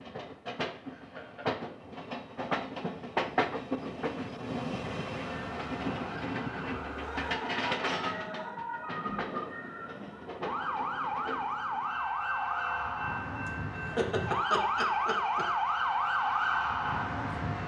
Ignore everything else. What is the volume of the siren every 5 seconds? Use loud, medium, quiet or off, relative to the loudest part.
off, medium, loud, loud.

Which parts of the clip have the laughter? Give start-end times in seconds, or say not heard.
0.9-1.6, 7.0-8.6, 13.4-15.4.